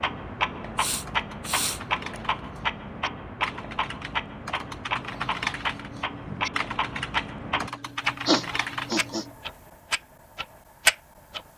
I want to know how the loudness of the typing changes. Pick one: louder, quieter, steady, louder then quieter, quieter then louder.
louder.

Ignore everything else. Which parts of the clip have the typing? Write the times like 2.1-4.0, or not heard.
0.8-9.3.